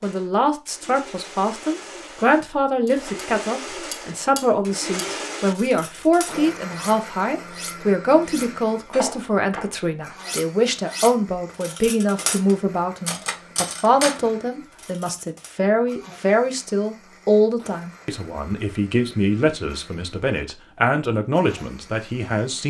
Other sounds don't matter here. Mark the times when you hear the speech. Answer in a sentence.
You can hear the speech from 0.0 to 22.6 s.